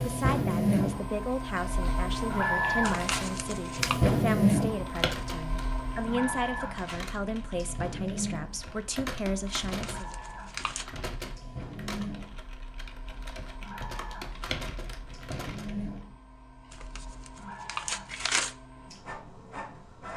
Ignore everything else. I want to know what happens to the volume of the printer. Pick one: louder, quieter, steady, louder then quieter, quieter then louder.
quieter.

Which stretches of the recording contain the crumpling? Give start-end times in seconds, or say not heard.
2.8-4.0, 9.6-10.8, 16.7-18.6.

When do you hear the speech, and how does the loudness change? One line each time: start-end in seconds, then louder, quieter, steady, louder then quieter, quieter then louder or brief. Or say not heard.
0.0-10.2 steady.